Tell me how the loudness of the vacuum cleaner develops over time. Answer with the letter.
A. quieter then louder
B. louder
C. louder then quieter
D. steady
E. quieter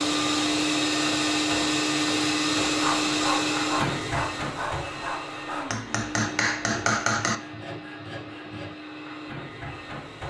E.